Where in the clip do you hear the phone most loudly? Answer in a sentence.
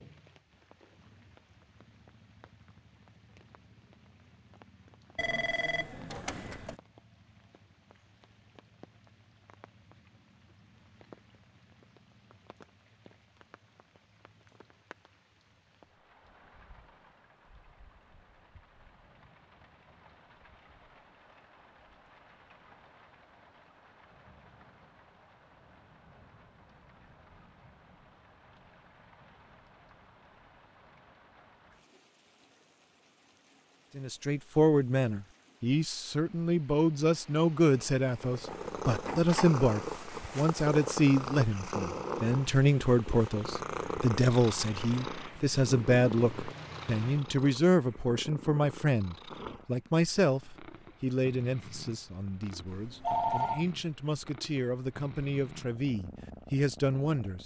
The volume of the phone peaks at 53 seconds.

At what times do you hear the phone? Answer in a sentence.
You can hear the phone from 5.2 to 6.8 s and from 52.6 to 53.6 s.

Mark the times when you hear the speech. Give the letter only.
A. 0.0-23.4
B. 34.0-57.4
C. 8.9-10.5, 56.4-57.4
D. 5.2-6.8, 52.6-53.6
B.